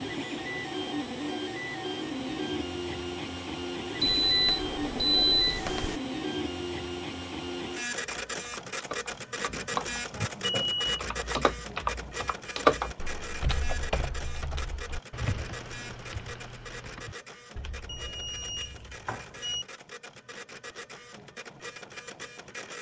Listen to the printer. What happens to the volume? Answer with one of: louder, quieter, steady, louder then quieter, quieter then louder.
quieter.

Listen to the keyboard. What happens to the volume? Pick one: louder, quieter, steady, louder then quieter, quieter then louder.
louder then quieter.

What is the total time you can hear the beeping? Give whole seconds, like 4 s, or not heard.
5 s.